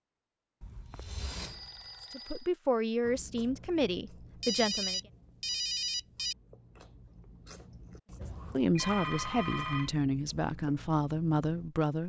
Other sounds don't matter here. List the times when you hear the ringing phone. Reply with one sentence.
The ringing phone can be heard from 0.6 to 2.5 s, from 4.4 to 6.3 s and from 8.2 to 9.9 s.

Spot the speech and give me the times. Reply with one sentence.
The speech can be heard from 2.1 to 5.0 s and from 8.5 to 12.0 s.